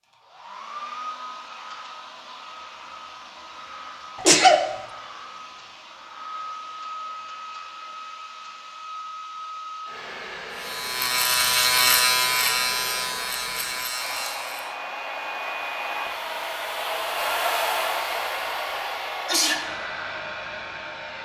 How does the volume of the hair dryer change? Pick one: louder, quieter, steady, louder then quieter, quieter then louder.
louder.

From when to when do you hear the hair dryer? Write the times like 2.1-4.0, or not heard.
0.0-21.2.